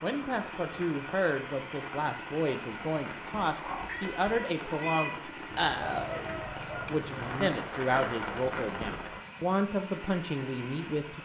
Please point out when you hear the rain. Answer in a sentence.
You can hear the rain from 0.2 to 9.2 s.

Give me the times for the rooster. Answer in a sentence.
You can hear the rooster from 5.6 to 7.5 s.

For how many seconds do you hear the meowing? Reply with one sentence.
The meowing can be heard for 2 seconds in total.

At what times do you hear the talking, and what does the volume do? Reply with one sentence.
You can hear the talking from 0.0 to 11.1 s, at a steady volume.